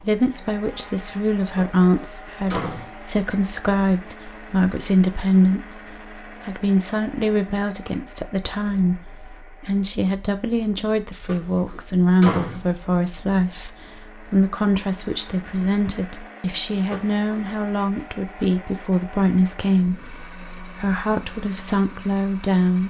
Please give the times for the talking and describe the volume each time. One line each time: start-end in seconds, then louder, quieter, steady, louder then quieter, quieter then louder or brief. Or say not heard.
0.0-22.8 steady.